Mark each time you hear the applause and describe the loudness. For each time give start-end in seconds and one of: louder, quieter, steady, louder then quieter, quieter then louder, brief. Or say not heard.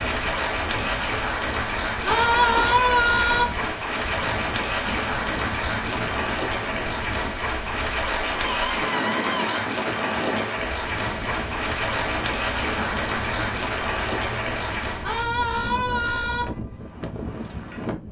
0.0-15.2 steady.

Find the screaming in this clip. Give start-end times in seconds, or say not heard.
2.0-3.5, 8.2-9.7, 15.0-16.4.